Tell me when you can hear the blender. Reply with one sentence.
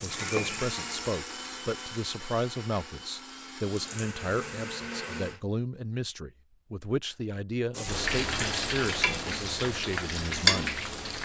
You can hear the blender from 0.0 to 5.4 s.